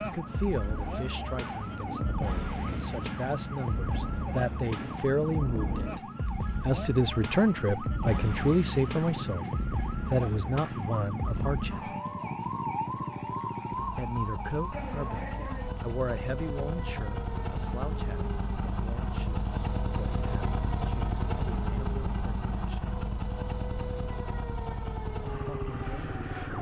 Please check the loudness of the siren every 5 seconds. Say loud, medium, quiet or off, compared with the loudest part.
loud, loud, loud, medium, medium, medium.